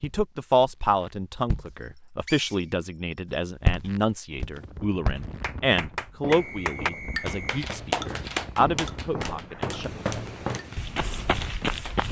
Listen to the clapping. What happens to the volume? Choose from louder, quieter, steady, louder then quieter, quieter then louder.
quieter.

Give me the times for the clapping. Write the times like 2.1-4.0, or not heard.
5.2-12.0.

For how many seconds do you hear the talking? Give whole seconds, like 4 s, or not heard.
10 s.